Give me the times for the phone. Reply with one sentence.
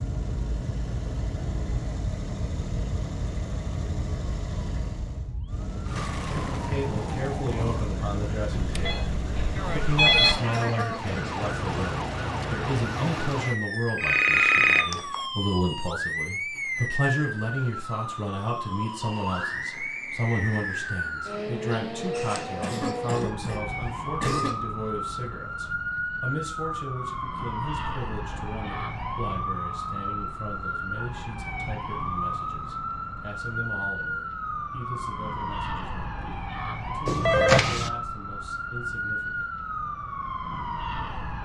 The phone can be heard from 8.7 to 10.3 s, from 13.9 to 15.2 s and from 37.0 to 37.9 s.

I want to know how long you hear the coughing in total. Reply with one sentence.
The coughing can be heard for 3 seconds in total.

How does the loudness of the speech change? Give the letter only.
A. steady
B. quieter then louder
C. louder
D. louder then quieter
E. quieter
E.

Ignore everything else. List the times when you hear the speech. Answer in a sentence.
The speech can be heard from 6.7 to 39.5 s.